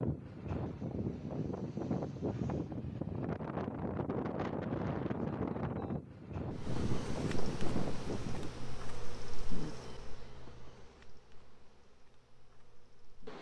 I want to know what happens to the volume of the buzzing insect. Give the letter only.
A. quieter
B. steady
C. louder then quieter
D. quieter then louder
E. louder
A.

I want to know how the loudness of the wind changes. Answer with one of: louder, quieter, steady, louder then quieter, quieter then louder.
steady.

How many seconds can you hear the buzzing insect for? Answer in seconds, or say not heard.
7 s.